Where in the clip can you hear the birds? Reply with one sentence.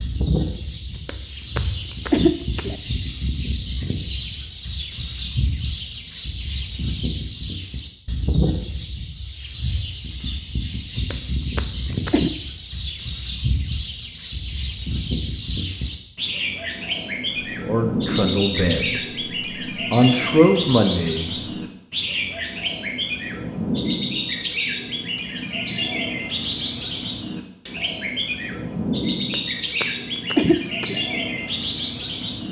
The birds can be heard from 0.0 to 32.4 s.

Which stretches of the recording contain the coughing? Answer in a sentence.
The coughing can be heard from 1.1 to 2.8 s, from 11.1 to 12.3 s and from 29.3 to 31.0 s.